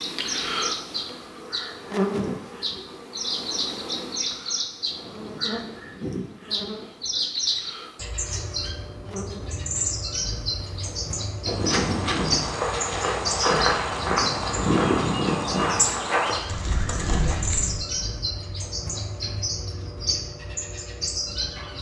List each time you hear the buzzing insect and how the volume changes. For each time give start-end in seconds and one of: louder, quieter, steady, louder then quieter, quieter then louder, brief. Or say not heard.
0.0-11.3 quieter.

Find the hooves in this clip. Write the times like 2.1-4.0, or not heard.
11.4-17.8.